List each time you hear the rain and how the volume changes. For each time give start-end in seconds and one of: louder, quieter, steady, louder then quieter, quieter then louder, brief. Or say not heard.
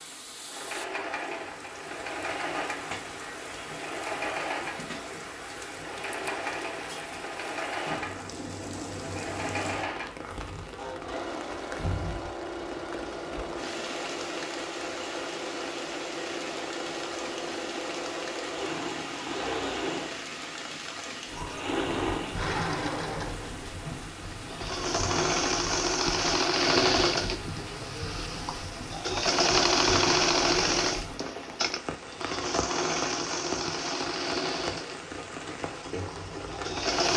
0.0-37.0 steady.